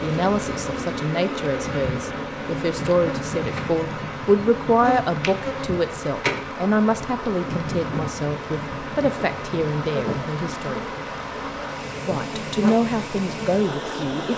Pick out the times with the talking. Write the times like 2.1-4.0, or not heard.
0.0-10.8, 12.1-14.3.